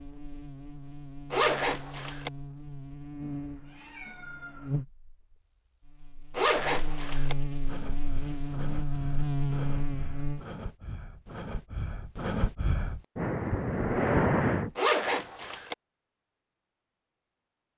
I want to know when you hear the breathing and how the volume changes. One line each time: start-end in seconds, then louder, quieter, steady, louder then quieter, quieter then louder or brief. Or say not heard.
7.7-14.7 louder.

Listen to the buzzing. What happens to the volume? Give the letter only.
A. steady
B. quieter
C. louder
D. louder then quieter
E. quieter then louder
C.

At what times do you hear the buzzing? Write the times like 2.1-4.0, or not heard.
0.0-10.4.